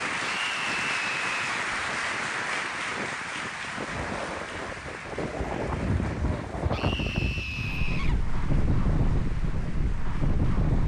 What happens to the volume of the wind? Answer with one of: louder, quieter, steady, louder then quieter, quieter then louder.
louder.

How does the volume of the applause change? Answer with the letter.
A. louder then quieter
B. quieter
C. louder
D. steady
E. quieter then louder
B.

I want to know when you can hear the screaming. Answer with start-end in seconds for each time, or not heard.
0.2-1.4, 6.7-8.2.